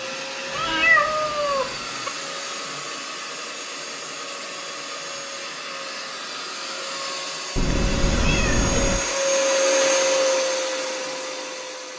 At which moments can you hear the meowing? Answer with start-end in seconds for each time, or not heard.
0.5-2.1, 7.5-9.0.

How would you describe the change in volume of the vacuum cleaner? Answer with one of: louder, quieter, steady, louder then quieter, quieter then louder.
louder.